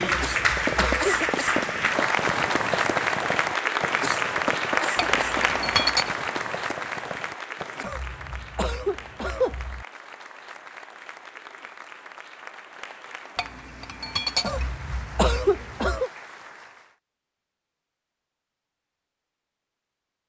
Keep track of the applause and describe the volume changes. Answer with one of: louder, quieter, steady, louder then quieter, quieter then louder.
quieter.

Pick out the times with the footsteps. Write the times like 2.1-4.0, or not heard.
not heard.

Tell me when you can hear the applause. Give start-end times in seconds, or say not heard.
0.0-16.9.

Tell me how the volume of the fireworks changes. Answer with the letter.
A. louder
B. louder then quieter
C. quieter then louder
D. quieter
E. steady
D.